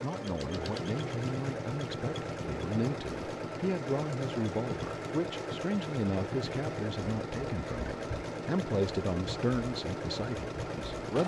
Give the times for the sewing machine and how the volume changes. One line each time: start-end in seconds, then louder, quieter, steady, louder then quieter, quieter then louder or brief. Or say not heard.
0.0-11.2 steady.